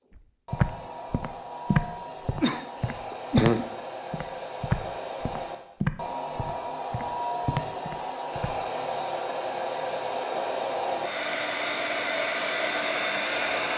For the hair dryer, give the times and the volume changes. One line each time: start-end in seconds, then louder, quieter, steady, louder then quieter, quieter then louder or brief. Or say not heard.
0.1-13.7 louder.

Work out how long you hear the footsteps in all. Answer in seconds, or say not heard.
8 s.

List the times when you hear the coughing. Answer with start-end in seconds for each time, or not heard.
2.4-3.6.